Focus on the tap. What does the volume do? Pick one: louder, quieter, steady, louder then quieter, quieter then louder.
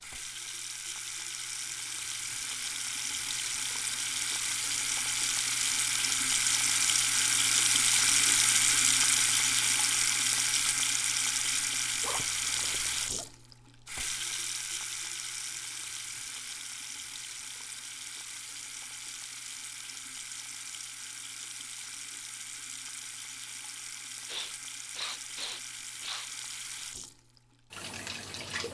louder then quieter.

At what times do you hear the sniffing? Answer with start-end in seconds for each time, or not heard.
24.2-26.3.